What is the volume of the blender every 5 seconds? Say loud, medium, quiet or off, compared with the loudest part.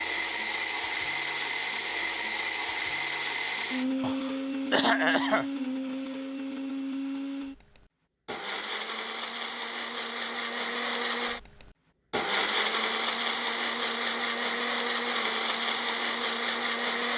loud, medium, loud, loud.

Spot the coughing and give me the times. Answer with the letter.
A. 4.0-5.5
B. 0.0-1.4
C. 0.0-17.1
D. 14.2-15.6
A.